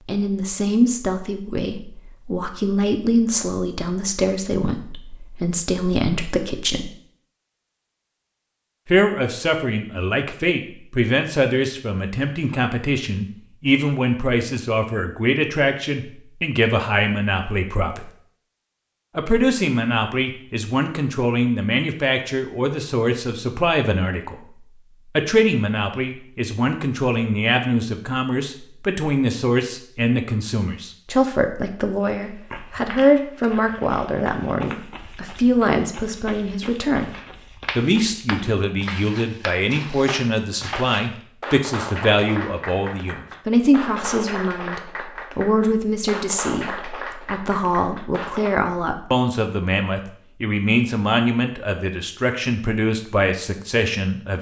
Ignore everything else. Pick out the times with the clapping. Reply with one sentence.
You can hear the clapping from 37.1 to 48.5 s.